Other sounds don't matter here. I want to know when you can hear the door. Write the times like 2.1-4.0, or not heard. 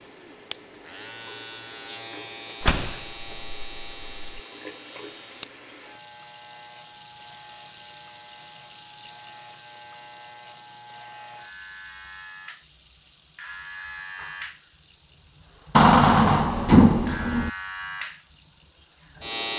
2.6-4.4, 15.8-17.5.